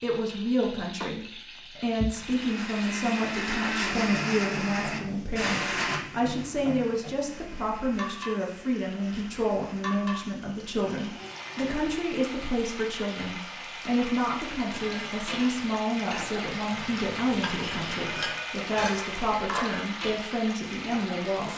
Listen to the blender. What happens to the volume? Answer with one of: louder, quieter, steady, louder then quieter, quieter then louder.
quieter.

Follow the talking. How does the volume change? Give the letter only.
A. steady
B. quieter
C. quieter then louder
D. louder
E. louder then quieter
A.